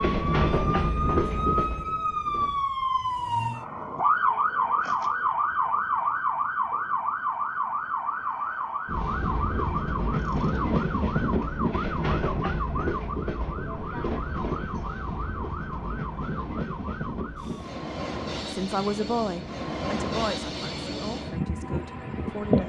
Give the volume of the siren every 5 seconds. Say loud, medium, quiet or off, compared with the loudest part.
loud, loud, medium, quiet, off.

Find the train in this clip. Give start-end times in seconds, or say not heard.
0.0-2.6, 8.8-22.6.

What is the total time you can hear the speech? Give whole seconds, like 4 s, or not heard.
4 s.